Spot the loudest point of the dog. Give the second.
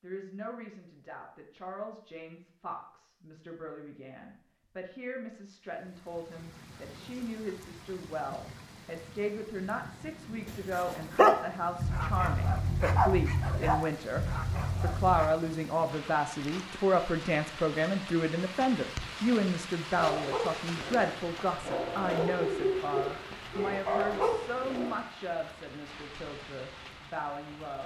11 s.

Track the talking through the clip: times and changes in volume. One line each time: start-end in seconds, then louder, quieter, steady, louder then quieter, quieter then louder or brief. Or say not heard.
0.0-27.8 louder then quieter.